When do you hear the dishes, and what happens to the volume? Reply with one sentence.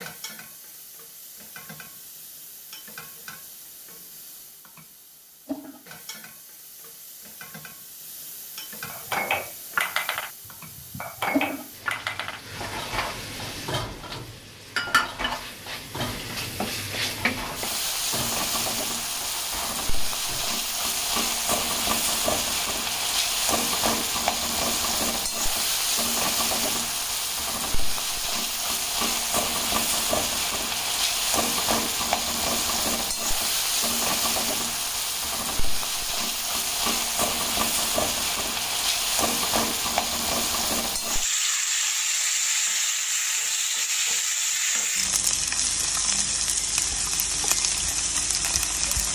You can hear the dishes from 8.8 to 20.6 s, getting quieter.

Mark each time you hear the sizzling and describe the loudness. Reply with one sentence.
You can hear the sizzling from 0.0 to 49.1 s, getting louder.